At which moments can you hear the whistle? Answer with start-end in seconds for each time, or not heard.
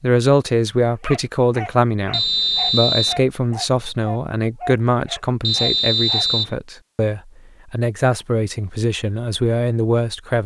2.1-3.2, 5.4-6.5.